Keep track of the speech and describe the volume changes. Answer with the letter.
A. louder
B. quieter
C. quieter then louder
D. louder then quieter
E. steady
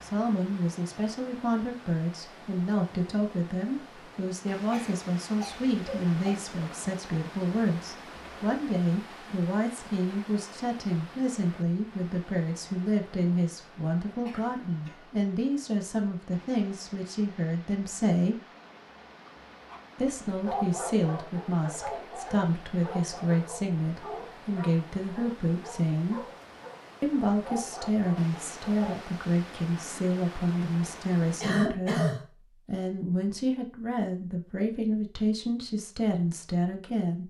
E.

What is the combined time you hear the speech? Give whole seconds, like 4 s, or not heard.
34 s.